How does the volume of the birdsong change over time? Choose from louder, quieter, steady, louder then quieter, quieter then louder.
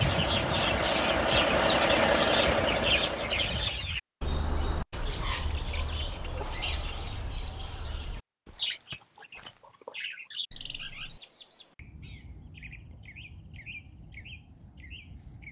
quieter.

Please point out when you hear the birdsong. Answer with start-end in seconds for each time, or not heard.
0.0-15.4.